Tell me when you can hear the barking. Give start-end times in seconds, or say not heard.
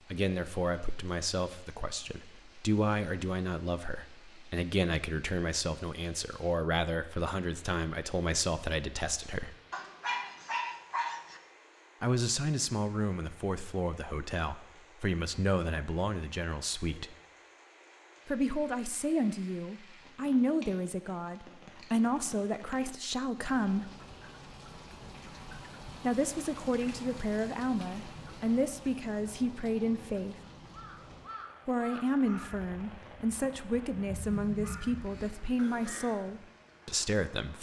9.7-11.4.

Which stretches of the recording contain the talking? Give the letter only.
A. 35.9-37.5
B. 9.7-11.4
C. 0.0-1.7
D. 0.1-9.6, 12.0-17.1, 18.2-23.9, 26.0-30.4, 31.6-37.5
D.